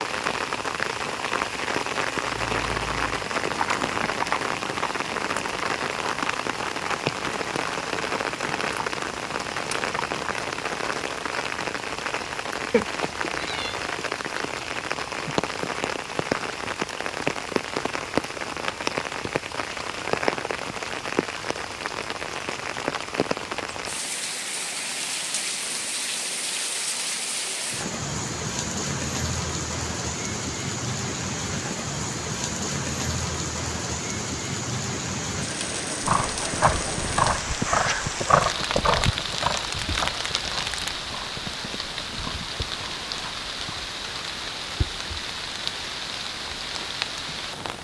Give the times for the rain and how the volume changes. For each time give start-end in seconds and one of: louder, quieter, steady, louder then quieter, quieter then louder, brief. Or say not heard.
0.0-47.7 steady.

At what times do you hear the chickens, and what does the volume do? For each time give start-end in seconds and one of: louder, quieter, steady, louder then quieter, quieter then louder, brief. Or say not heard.
not heard.